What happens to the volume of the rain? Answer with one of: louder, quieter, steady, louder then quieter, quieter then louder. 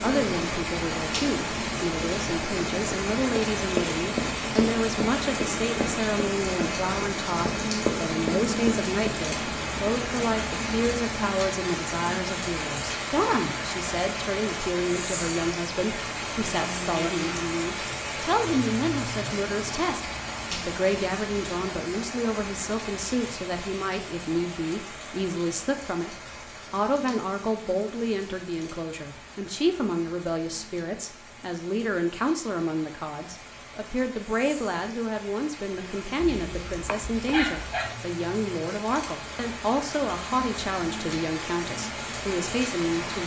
quieter then louder.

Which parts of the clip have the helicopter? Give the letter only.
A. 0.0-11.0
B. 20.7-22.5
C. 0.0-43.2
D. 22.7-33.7
A.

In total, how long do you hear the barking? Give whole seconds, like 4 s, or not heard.
2 s.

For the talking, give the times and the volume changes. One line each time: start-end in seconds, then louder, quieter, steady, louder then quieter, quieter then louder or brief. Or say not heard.
0.0-43.2 steady.